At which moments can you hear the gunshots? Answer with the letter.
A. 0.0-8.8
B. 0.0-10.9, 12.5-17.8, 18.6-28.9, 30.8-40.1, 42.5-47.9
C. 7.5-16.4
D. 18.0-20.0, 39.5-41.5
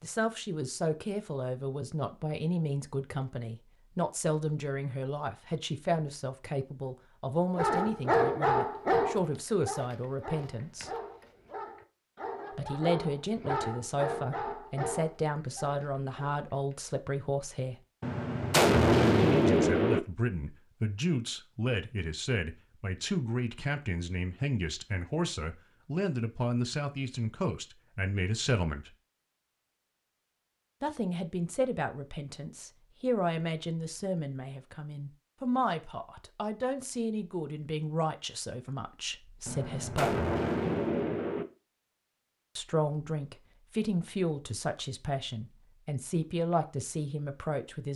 D.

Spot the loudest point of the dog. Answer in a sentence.
The volume of the dog peaks at 8 seconds.